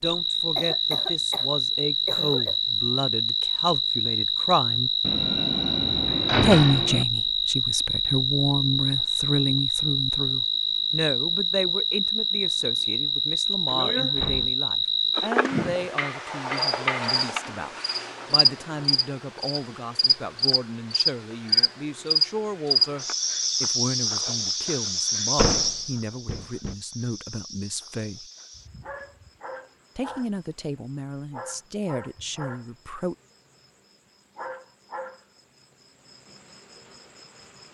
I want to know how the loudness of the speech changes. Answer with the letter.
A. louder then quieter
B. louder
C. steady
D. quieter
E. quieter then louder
D.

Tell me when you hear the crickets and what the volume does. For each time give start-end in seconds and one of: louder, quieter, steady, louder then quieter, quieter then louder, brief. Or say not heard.
0.0-37.6 quieter.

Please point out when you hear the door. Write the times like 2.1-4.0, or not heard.
5.0-7.0, 13.7-14.6, 25.4-26.8.